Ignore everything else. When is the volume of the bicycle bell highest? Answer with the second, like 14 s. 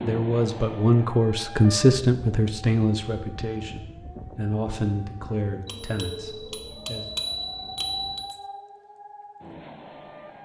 7 s.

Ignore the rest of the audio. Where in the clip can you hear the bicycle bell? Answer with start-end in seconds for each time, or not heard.
5.7-8.3.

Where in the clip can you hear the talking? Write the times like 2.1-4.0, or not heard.
0.0-7.0.